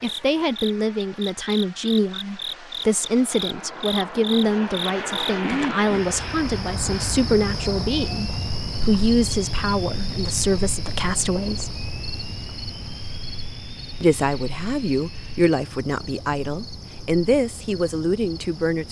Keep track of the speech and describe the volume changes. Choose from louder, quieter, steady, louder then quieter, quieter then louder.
steady.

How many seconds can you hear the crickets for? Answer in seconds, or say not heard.
19 s.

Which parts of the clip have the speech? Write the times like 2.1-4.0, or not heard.
0.0-11.8, 14.0-18.8.